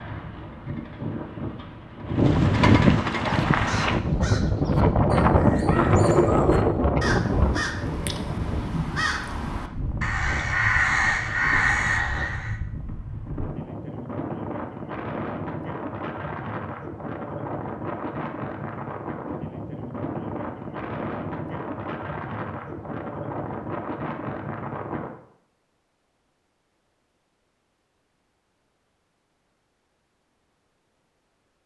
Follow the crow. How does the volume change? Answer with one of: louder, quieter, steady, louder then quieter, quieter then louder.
louder.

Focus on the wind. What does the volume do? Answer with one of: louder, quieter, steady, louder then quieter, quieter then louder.
quieter.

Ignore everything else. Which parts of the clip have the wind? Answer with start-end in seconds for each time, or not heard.
0.0-25.1.